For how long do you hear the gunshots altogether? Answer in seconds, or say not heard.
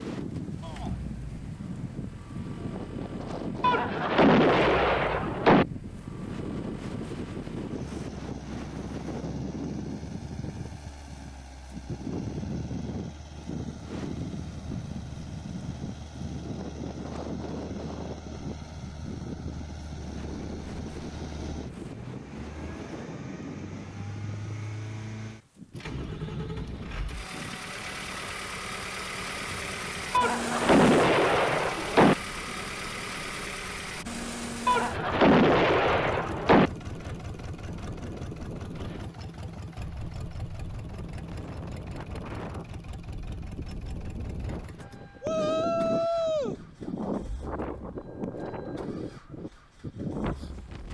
6 s.